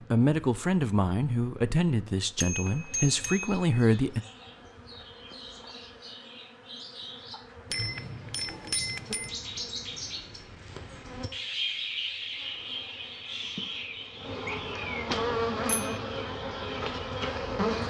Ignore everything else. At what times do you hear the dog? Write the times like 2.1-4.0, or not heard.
not heard.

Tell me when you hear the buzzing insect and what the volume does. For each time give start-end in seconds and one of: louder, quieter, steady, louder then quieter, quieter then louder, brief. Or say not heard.
0.0-17.8 louder.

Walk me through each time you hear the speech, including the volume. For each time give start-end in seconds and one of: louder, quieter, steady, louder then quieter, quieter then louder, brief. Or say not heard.
0.1-4.2 steady.